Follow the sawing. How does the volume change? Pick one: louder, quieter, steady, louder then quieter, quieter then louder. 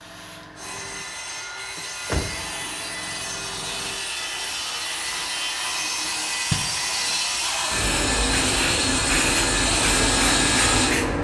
louder.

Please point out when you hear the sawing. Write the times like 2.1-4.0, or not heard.
0.6-10.9.